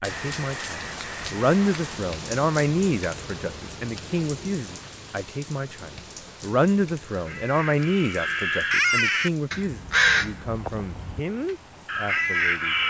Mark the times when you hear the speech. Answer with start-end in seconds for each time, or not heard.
0.0-12.8.